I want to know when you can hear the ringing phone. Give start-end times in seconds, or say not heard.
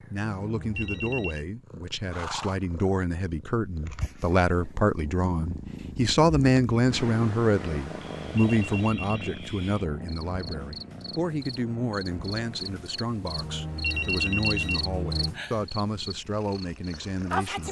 0.4-1.4, 8.1-9.3, 13.3-15.3.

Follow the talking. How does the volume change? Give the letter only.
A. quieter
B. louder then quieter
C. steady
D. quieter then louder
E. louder
B.